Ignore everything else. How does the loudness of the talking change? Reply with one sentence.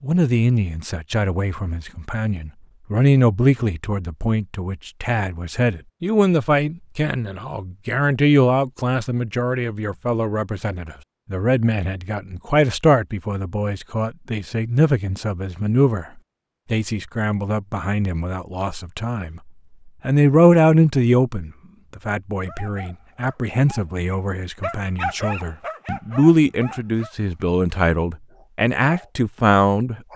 The volume of the talking stays about the same.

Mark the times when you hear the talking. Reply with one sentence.
You can hear the talking from 0.0 to 16.1 s and from 16.7 to 30.1 s.